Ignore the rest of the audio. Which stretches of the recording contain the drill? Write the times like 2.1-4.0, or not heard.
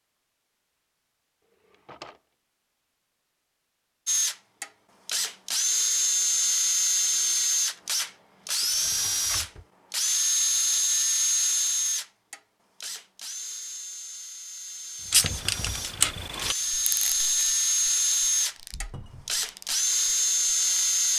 4.0-21.1.